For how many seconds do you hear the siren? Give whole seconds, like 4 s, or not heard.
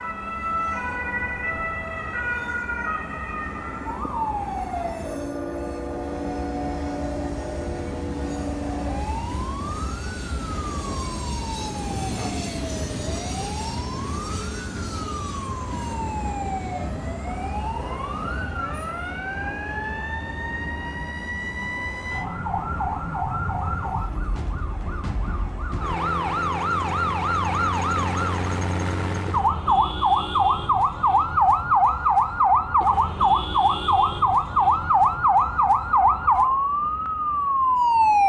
38 s.